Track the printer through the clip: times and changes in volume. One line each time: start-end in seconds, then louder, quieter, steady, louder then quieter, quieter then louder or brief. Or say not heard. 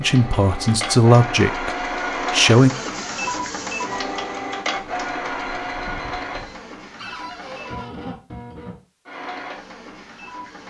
0.0-10.6 quieter.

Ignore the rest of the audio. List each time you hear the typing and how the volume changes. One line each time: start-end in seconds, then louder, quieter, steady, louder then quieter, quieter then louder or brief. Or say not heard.
not heard.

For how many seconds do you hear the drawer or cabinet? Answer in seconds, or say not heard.
2 s.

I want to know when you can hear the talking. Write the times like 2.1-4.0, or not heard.
0.0-2.7.